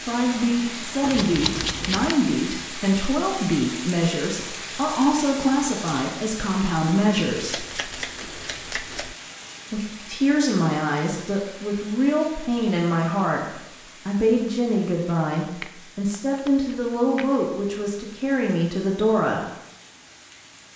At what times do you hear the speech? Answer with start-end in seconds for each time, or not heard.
0.0-7.6, 9.7-19.4.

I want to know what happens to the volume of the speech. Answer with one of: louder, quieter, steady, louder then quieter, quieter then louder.
steady.